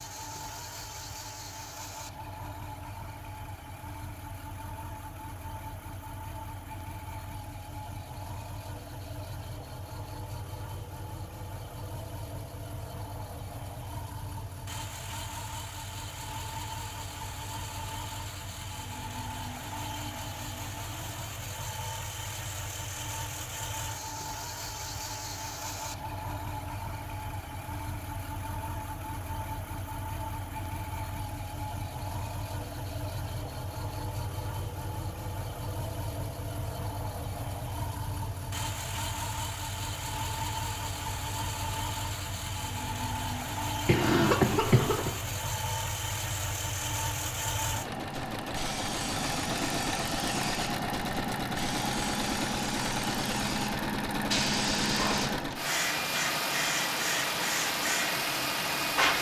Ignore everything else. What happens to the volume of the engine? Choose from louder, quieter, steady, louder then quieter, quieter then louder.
louder.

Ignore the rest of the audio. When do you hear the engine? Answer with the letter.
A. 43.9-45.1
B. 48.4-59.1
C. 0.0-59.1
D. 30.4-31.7
C.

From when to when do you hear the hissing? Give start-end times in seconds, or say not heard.
48.4-59.1.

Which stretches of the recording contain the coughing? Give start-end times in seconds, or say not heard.
43.9-45.1.